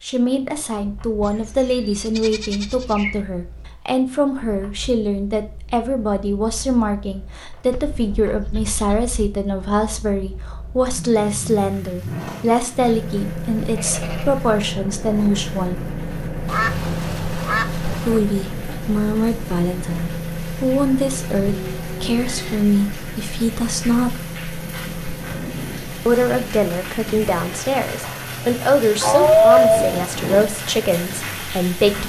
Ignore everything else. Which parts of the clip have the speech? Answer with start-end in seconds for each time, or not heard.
0.0-15.8, 18.0-24.1, 26.1-32.0.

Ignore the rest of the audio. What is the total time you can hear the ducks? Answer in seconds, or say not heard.
2 s.